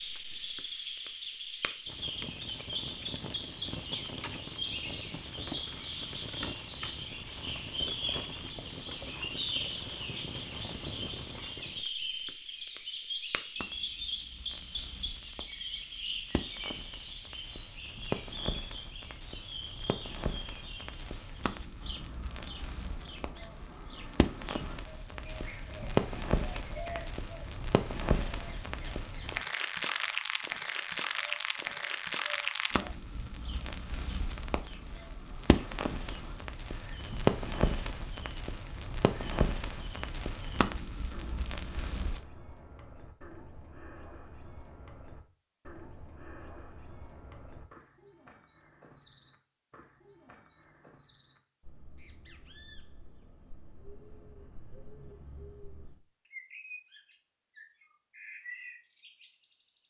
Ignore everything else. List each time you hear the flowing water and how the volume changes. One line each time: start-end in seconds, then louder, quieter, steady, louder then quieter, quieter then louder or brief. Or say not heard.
not heard.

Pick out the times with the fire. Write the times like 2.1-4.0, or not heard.
0.0-42.2.